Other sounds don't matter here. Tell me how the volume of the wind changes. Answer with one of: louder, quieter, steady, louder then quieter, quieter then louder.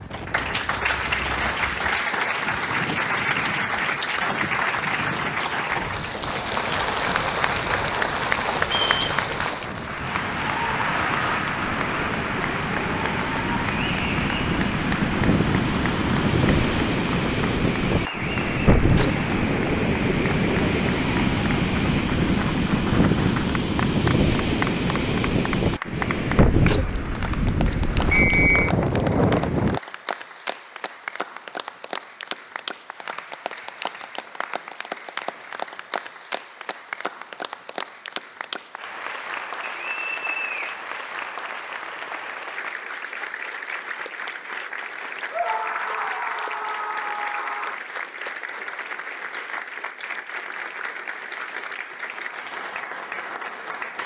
louder.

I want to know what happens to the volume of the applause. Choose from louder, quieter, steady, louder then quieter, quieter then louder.
quieter.